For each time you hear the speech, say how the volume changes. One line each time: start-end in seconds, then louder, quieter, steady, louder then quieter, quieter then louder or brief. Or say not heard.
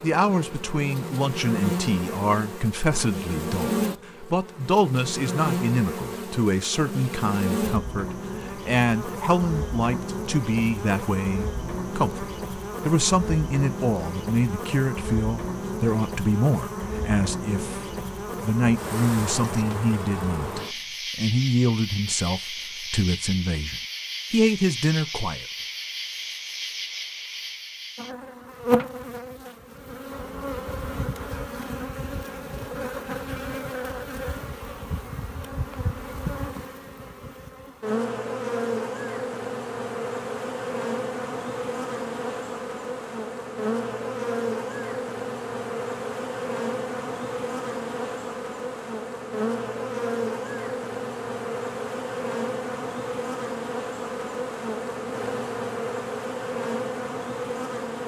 0.0-25.4 steady.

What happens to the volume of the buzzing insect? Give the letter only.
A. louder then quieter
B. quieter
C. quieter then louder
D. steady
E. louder
D.